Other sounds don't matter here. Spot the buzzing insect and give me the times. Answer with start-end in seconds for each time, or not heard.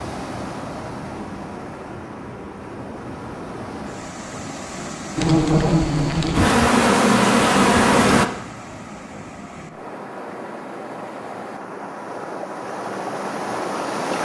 5.2-8.2.